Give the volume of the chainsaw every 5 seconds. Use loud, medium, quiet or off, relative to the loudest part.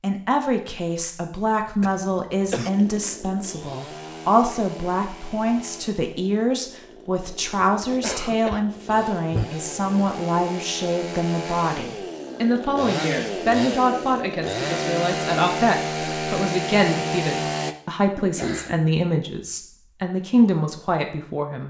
quiet, quiet, loud, loud, off.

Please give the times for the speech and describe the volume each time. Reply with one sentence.
You can hear the speech from 0.0 to 21.6 s, at a steady volume.